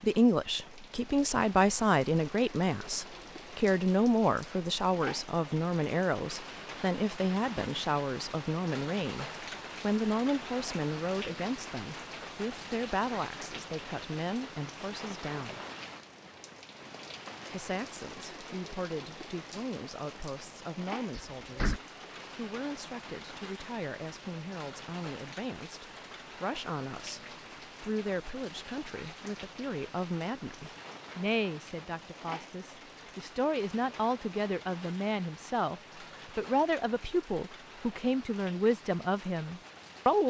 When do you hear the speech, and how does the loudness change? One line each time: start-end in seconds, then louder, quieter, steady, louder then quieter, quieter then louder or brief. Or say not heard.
0.0-15.6 quieter
17.5-40.2 louder.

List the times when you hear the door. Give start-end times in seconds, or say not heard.
21.1-21.8.